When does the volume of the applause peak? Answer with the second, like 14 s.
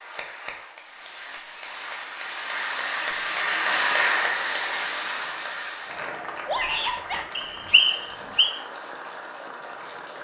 4 s.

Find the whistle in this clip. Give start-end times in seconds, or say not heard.
7.3-8.6.